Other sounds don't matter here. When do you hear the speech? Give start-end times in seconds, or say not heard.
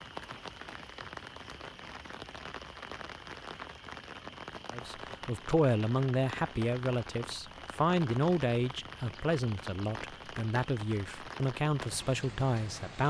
4.7-13.0.